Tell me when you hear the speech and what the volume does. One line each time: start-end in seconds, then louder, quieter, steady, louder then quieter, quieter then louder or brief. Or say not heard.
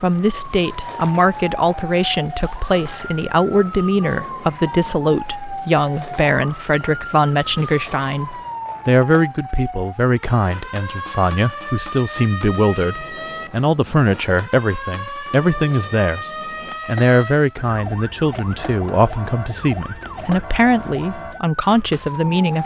0.0-22.6 steady.